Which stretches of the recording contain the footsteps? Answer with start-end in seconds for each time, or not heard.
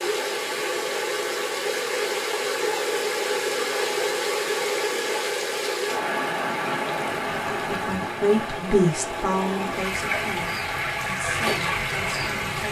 not heard.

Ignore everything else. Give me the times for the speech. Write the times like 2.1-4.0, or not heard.
7.7-12.6.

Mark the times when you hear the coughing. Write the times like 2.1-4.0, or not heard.
not heard.